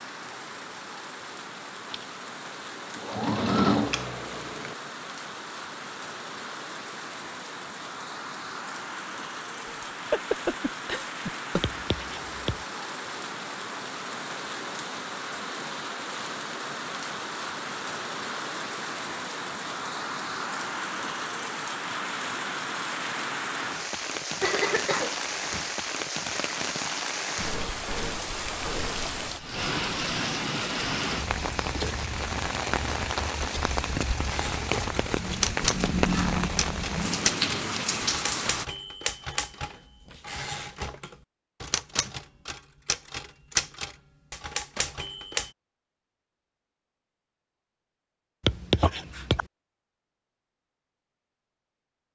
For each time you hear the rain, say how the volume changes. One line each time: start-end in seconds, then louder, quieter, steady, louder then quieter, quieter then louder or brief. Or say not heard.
0.0-38.6 louder.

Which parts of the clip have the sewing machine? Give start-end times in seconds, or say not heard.
1.9-4.8.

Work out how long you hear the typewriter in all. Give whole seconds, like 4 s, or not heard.
11 s.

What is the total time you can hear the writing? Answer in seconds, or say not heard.
2 s.